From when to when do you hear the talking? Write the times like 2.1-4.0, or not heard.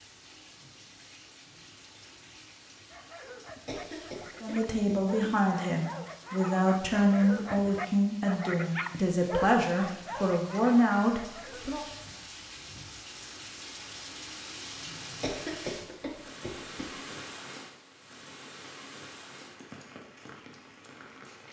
4.4-11.8.